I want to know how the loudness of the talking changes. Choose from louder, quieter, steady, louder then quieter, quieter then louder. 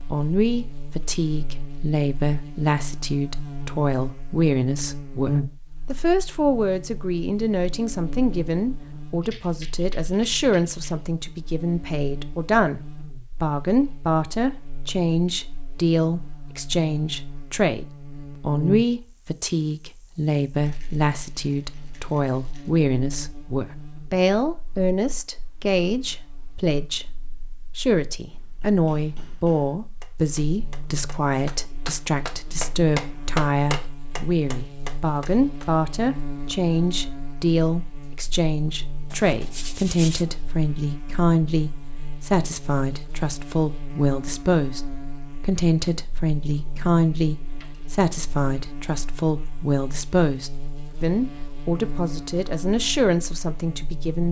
steady.